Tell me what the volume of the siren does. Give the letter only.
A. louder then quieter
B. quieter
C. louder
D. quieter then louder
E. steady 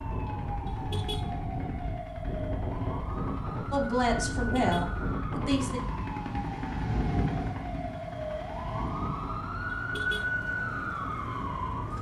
C.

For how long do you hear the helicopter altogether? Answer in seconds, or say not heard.
12 s.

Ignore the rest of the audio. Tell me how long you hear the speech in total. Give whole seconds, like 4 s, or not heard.
2 s.